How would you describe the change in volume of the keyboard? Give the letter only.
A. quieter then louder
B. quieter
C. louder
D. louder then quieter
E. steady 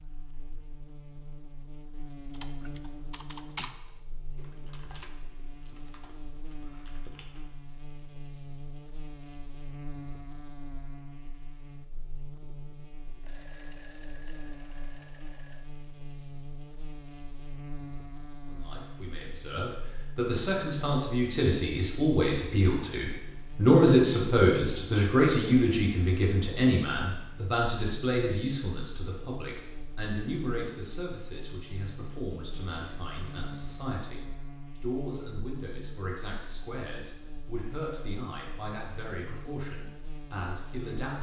B.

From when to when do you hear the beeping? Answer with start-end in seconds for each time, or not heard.
13.2-15.7.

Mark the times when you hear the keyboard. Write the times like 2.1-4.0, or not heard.
2.3-7.5.